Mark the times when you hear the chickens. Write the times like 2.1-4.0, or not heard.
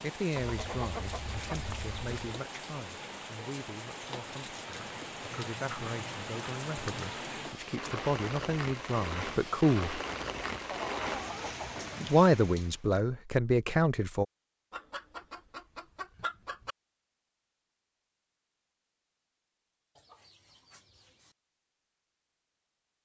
0.3-2.4, 4.7-7.1, 10.6-12.2, 14.7-16.8, 19.9-21.4.